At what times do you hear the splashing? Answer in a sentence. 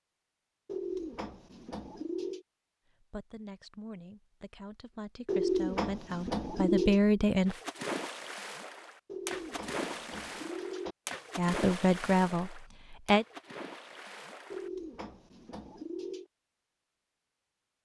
You can hear the splashing from 7.5 to 14.7 s.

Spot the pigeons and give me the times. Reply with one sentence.
You can hear the pigeons from 0.7 to 2.5 s, from 5.2 to 7.0 s, from 9.1 to 10.9 s and from 14.5 to 16.2 s.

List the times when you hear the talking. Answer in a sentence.
The talking can be heard from 2.9 to 7.6 s and from 11.3 to 13.2 s.